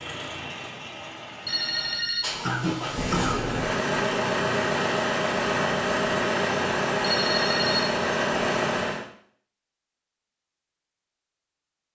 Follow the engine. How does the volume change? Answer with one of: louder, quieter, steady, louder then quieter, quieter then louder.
louder.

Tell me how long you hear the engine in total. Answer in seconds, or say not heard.
9 s.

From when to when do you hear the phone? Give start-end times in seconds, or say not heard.
1.4-2.2, 7.0-8.0.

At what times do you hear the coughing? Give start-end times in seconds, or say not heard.
2.4-3.5.